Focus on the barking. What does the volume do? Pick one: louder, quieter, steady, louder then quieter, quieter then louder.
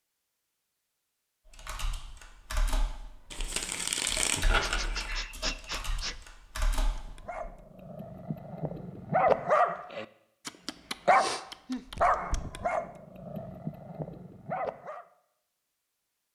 louder then quieter.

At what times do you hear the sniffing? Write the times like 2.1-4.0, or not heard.
4.6-6.2, 11.1-11.8.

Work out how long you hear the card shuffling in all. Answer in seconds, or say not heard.
2 s.